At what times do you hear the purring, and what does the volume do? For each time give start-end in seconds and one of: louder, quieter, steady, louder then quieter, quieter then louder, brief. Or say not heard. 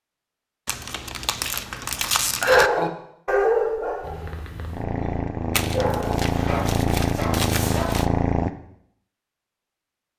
4.0-8.5 louder.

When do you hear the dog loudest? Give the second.
3 s.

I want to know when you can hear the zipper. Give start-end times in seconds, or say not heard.
not heard.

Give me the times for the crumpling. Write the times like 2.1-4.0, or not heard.
0.7-2.7, 5.5-8.1.